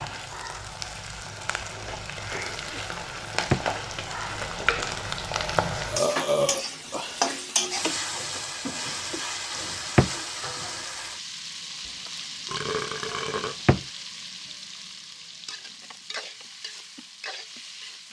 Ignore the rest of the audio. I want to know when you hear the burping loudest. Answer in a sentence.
The loudest moment of the burping is at 6 seconds.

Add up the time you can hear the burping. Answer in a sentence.
You can hear the burping for 4 seconds altogether.